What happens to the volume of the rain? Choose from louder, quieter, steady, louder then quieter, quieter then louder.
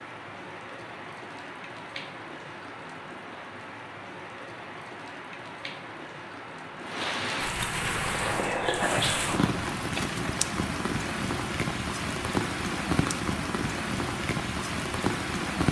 louder.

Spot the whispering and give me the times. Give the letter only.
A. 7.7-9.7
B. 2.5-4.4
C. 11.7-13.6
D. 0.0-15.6
A.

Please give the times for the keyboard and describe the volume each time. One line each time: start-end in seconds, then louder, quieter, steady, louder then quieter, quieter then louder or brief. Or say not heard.
not heard.